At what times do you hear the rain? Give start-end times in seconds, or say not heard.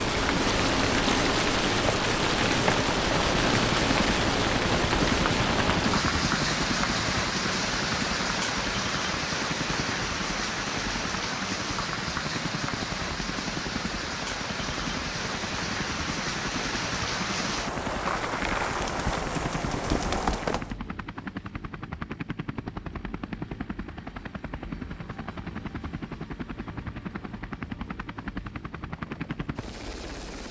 0.0-20.8.